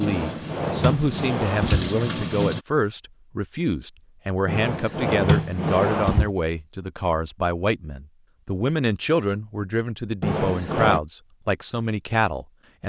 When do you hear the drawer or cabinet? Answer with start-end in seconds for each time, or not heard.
0.0-1.9, 4.5-6.3, 10.2-11.0.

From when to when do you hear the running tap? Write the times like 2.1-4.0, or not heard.
0.0-2.6.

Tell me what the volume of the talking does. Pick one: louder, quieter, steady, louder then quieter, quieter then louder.
steady.